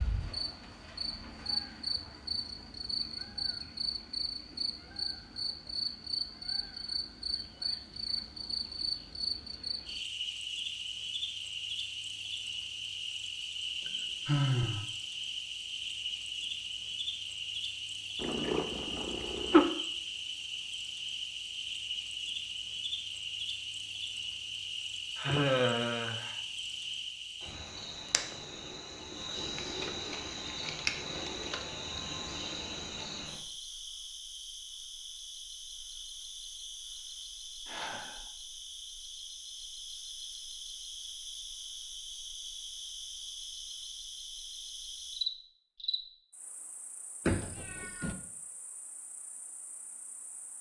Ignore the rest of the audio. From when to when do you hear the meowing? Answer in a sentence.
The meowing can be heard from 18.2 to 19.6 s and from 47.2 to 48.1 s.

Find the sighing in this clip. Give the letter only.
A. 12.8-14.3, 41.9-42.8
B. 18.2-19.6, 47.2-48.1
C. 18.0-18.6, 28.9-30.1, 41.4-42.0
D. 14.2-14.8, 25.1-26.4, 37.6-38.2
D.